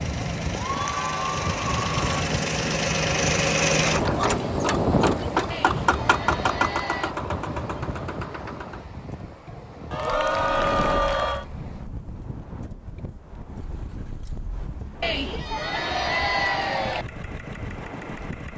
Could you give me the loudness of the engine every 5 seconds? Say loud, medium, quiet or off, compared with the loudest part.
loud, loud, quiet, quiet.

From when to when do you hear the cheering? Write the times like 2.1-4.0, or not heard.
0.2-2.2, 5.5-7.2, 9.9-11.4, 15.0-17.1.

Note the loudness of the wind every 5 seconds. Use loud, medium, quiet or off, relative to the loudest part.
loud, loud, medium, medium.